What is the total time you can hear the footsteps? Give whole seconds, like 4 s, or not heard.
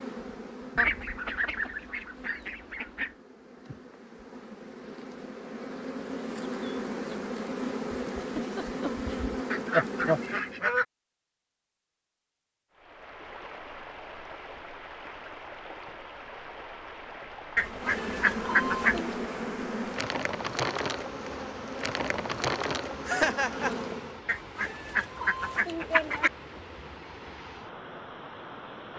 not heard.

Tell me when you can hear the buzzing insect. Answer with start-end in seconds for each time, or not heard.
0.0-10.7, 17.6-24.2.